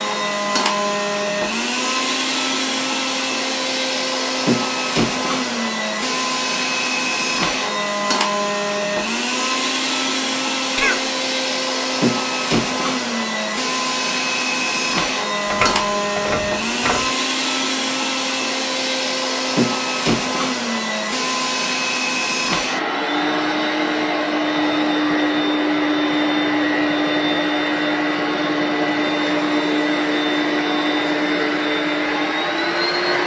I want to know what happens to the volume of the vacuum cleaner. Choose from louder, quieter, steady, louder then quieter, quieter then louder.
steady.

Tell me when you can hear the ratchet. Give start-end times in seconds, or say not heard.
15.4-17.1.